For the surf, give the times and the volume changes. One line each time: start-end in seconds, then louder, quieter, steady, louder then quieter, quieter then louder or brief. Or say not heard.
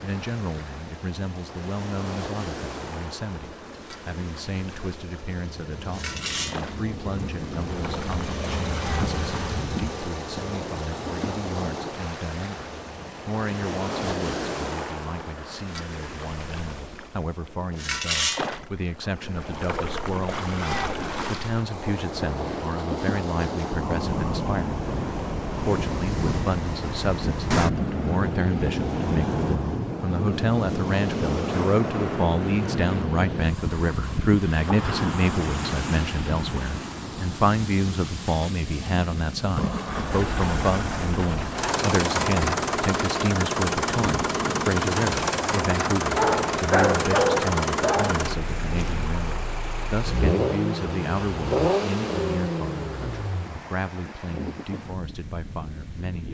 0.0-56.2 louder then quieter.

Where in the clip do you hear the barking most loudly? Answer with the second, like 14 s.
47 s.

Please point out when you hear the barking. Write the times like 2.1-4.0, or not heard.
46.1-48.1.